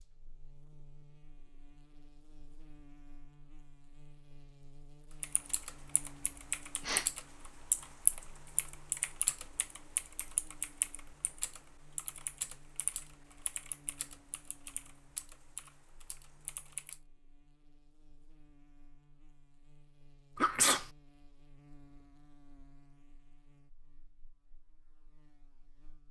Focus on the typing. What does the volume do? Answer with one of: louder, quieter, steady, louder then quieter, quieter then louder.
quieter.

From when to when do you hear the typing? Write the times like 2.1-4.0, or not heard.
5.2-17.0.